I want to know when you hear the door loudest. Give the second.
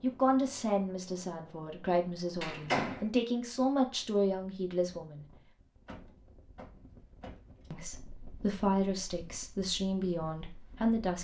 3 s.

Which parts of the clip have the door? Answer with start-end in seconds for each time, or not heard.
2.4-3.1, 5.8-7.7.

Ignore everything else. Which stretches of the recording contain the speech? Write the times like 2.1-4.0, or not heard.
0.0-5.2, 7.7-11.1.